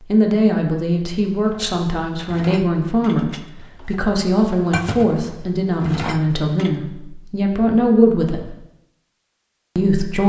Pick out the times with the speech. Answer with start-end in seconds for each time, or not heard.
0.1-8.6, 9.8-10.2.